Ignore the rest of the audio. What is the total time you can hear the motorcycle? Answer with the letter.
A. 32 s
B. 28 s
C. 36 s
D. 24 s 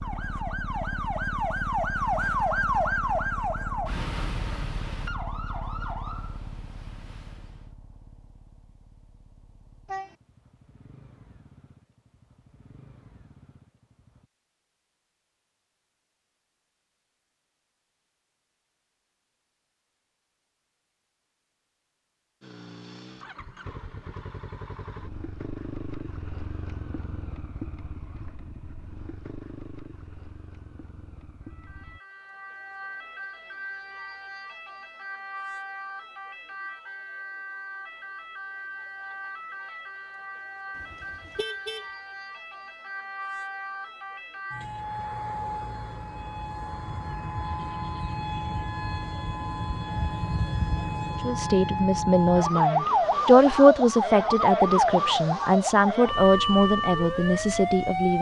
D.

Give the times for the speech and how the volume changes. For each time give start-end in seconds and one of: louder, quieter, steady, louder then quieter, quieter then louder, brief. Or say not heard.
51.2-58.1 louder then quieter.